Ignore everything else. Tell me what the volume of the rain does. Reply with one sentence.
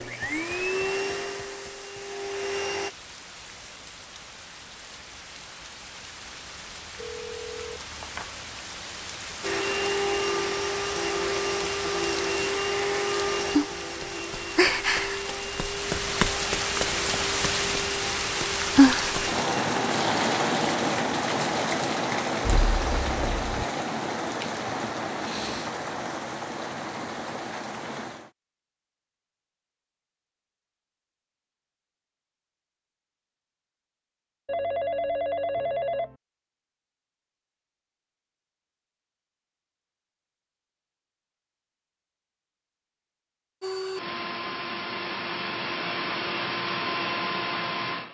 The volume of the rain goes up, then down.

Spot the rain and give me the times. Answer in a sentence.
You can hear the rain from 0.0 to 28.3 s.